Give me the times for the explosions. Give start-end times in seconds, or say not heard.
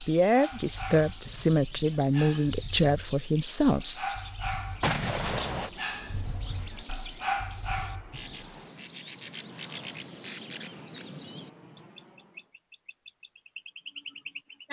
4.8-5.7.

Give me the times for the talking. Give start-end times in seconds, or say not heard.
0.0-4.0.